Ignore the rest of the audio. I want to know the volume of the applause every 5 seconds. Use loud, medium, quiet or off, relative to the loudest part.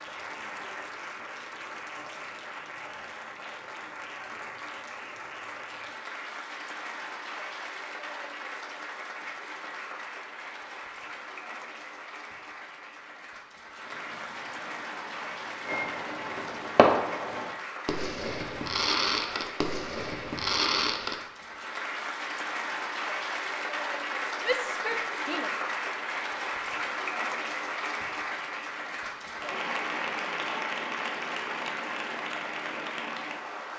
medium, medium, medium, medium, loud, loud, loud.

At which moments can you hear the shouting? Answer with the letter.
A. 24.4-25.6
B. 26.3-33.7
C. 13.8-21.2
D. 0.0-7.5
A.